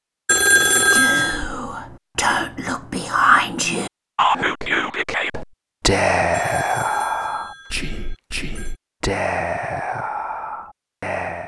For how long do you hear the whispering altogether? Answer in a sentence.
The whispering can be heard for 11 seconds in total.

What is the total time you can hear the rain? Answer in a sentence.
The rain can't be heard in this clip.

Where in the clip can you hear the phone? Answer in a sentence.
You can hear the phone from 0.2 to 1.4 s and from 6.3 to 8.8 s.